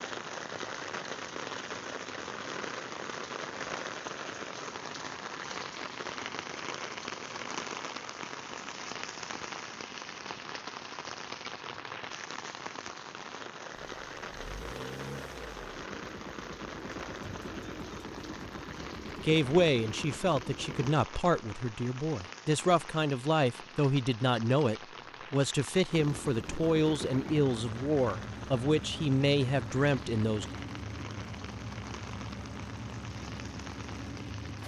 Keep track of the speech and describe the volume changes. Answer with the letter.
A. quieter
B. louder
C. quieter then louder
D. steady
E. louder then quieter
D.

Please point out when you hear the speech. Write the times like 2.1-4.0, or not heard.
19.2-30.4.